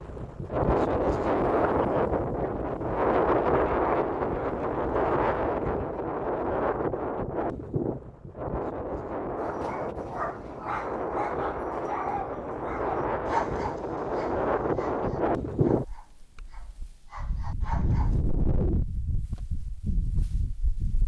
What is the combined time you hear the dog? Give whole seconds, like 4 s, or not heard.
9 s.